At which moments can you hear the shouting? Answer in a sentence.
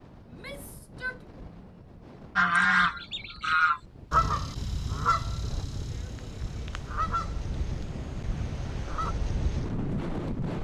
The shouting can be heard from 0.2 to 1.2 s.